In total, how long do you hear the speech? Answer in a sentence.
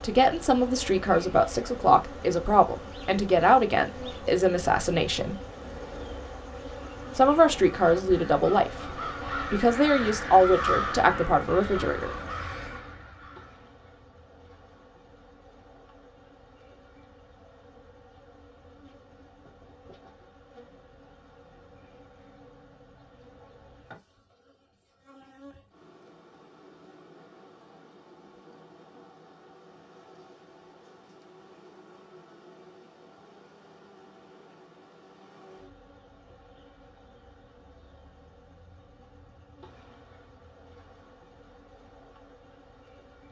The speech can be heard for 10 seconds in total.